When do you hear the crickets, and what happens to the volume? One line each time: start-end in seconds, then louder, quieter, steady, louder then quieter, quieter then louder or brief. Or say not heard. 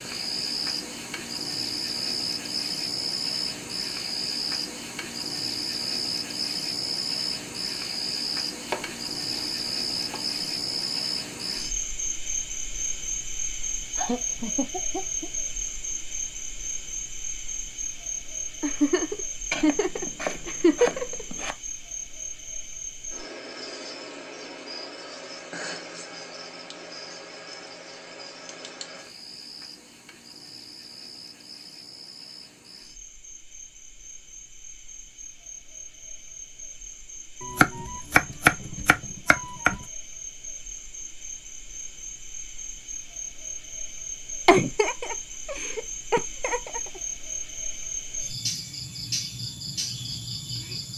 0.0-50.9 quieter then louder.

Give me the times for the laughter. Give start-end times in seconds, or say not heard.
13.9-15.3, 18.6-21.2, 44.5-46.8.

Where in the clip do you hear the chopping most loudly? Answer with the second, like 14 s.
38 s.